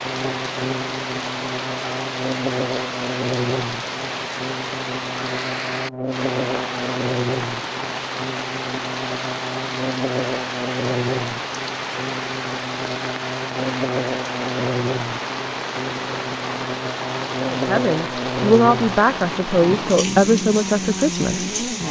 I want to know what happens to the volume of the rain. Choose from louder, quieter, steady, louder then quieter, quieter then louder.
steady.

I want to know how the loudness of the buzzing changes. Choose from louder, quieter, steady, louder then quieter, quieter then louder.
steady.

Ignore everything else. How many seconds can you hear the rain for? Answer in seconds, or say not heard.
22 s.